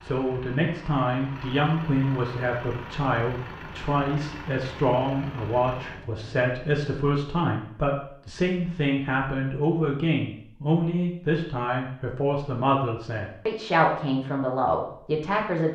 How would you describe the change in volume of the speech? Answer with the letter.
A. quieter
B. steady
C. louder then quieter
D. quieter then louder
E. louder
B.